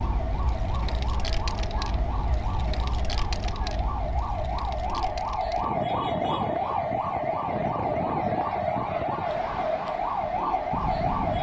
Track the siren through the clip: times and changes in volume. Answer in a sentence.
You can hear the siren from 0.0 to 11.3 s, getting louder.